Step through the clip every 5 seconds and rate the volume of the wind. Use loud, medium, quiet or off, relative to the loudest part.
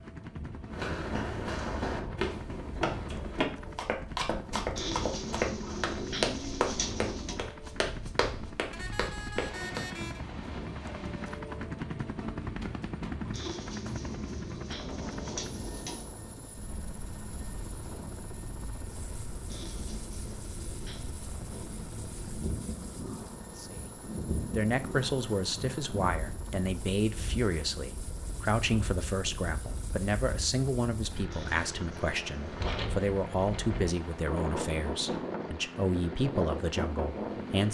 medium, medium, medium, medium, medium, medium, loud, loud.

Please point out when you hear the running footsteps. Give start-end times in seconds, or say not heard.
0.7-9.8.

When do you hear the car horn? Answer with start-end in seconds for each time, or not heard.
8.7-10.2.